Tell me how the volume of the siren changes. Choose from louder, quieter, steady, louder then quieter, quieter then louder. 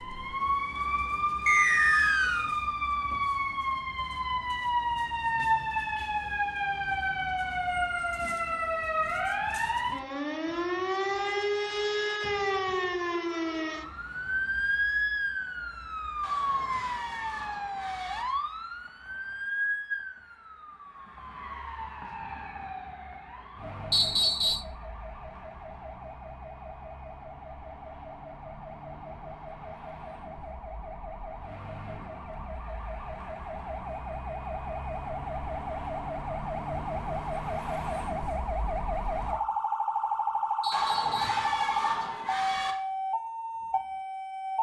quieter then louder.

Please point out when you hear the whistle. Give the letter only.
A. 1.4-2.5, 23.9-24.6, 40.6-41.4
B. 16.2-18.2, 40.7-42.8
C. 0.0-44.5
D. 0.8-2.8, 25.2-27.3
A.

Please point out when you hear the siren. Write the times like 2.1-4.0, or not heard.
0.0-44.5.